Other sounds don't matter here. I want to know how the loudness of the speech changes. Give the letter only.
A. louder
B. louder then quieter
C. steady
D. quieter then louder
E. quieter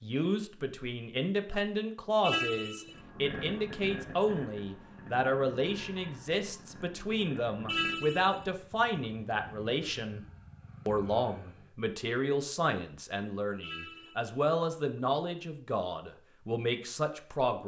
C.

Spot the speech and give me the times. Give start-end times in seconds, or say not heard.
0.0-10.2, 10.8-17.6.